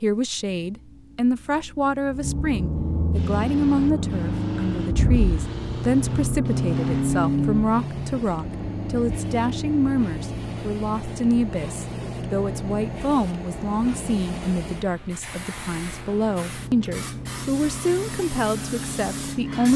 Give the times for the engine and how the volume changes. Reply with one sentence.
The engine can be heard from 0.1 to 19.7 s, getting louder then quieter.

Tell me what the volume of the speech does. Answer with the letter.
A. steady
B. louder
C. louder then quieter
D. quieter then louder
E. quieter
A.